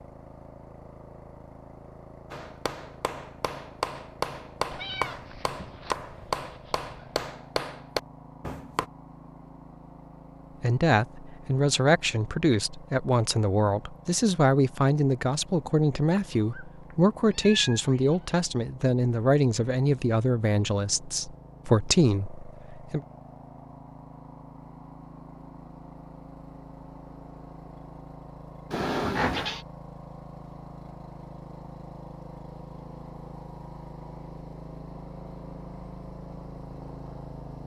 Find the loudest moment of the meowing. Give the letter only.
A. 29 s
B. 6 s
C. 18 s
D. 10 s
A.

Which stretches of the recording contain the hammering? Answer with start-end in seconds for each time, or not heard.
2.3-8.8.